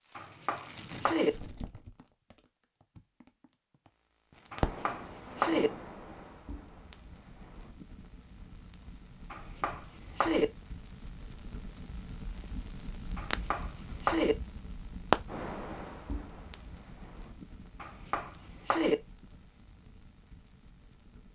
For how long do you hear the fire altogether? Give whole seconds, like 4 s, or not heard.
21 s.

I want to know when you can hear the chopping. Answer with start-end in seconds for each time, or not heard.
0.1-1.3, 4.5-5.7, 9.3-10.4, 13.2-14.3, 17.8-18.9.